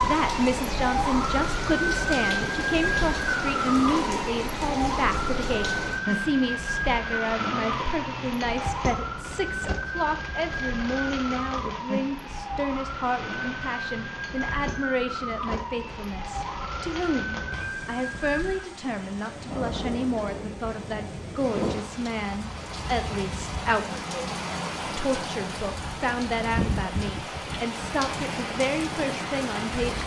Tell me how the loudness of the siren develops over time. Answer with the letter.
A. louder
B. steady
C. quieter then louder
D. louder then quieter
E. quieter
E.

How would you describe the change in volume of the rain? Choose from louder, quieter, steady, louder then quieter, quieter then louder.
quieter then louder.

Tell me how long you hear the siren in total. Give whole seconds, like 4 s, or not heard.
19 s.